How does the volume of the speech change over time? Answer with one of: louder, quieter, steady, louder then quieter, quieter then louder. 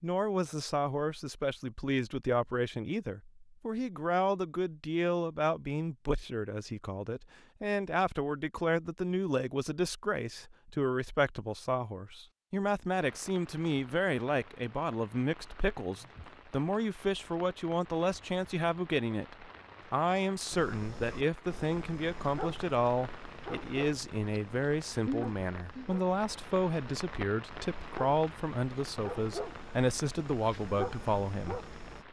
steady.